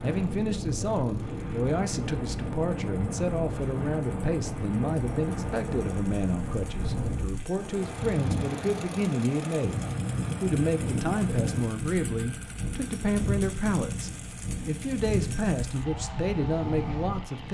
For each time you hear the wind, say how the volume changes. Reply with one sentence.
The wind can be heard from 0.0 to 17.4 s, at a steady volume.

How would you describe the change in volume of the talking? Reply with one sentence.
The loudness of the talking stays about the same.